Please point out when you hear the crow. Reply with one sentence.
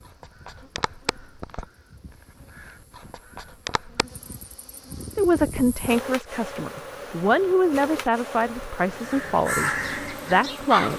The crow can be heard from 0.1 to 1.7 s, from 2.5 to 4.0 s and from 8.9 to 10.9 s.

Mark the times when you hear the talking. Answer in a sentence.
The talking can be heard from 5.2 to 10.9 s.